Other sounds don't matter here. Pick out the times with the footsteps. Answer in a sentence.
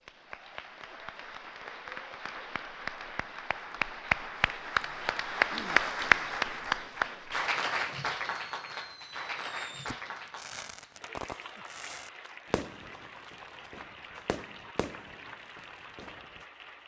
The footsteps can't be heard in this clip.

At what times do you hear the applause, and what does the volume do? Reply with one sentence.
The applause can be heard from 0.0 to 16.8 s, getting louder then quieter.